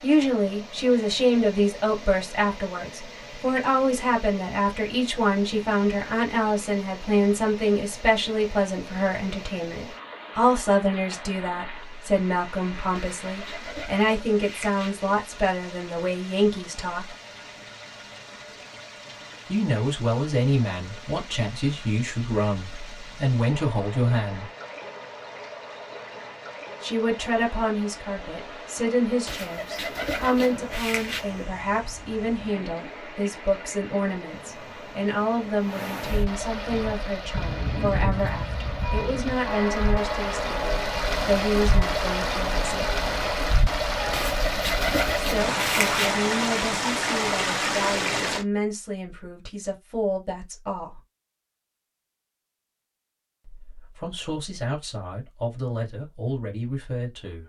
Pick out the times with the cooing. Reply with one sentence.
The cooing can be heard from 12.9 to 15.1 s, from 29.2 to 31.4 s and from 44.1 to 46.1 s.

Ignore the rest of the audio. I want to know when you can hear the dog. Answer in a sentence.
The dog can't be heard in this clip.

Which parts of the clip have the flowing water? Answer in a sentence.
You can hear the flowing water from 0.0 to 48.5 s.